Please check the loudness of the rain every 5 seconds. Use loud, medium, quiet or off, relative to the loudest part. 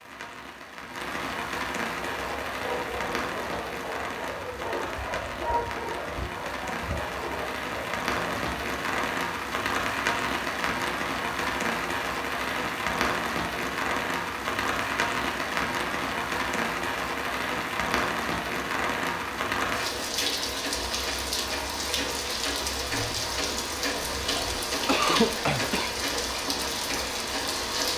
medium, loud, loud, loud, loud, loud.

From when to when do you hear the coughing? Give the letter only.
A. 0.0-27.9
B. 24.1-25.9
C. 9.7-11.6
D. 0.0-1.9
B.